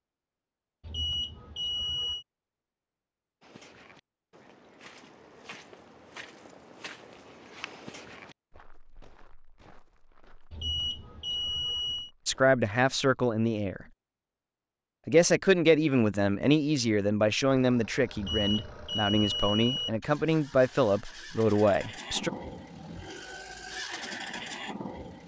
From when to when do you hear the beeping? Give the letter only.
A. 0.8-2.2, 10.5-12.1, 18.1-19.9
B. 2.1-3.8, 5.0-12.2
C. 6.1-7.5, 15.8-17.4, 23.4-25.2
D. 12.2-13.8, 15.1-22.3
A.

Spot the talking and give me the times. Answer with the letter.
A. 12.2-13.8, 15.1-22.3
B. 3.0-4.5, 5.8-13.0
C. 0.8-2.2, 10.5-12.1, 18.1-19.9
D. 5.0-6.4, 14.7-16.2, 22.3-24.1
A.